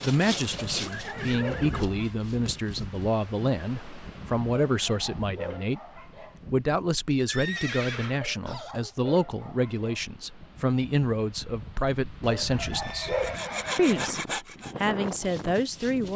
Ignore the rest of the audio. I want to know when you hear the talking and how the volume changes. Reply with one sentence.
You can hear the talking from 0.0 to 16.1 s, at a steady volume.